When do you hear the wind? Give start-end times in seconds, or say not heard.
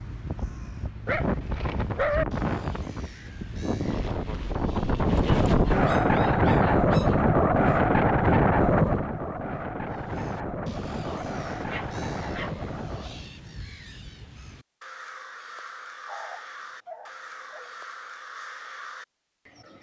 0.0-13.3.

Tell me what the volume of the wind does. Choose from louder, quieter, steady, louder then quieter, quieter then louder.
louder then quieter.